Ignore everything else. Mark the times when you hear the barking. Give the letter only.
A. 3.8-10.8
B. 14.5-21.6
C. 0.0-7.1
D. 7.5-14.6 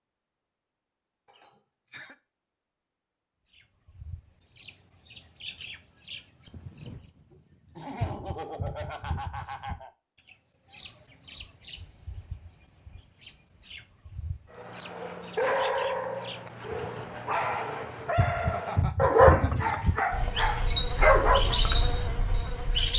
B.